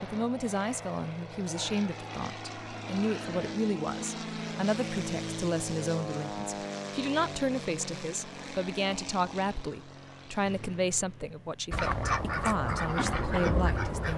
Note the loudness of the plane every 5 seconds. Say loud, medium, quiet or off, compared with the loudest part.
loud, loud, medium.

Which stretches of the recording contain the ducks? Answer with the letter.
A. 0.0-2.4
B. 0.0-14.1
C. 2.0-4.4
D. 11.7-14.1
D.